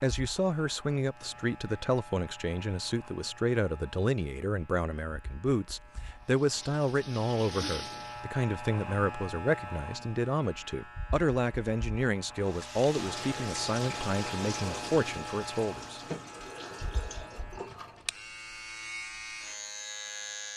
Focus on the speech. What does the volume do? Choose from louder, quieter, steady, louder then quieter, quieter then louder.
steady.